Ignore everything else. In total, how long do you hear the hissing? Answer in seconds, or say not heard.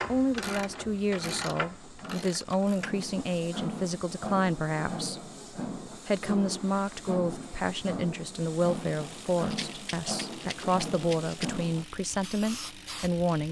13 s.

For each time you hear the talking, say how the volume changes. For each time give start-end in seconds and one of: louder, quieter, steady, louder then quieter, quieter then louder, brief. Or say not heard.
0.1-13.4 steady.